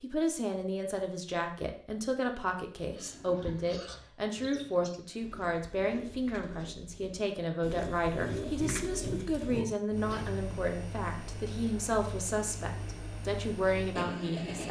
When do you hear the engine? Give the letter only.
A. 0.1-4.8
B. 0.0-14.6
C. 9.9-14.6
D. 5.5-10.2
C.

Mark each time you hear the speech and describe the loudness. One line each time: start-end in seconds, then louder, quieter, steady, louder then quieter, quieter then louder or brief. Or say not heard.
0.0-14.6 steady.